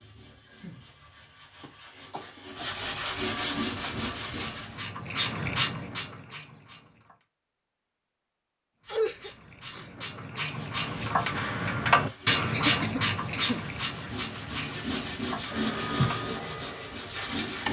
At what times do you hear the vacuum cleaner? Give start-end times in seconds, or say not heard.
15.4-17.4.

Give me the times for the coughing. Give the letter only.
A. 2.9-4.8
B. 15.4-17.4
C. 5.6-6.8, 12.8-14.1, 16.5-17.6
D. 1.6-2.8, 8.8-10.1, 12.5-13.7
D.